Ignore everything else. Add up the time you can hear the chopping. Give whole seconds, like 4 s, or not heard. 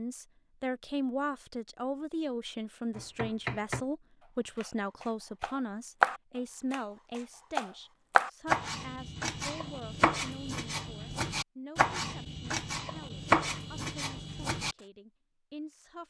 11 s.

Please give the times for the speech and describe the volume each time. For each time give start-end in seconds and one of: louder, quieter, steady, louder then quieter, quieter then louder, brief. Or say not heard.
0.0-16.0 quieter.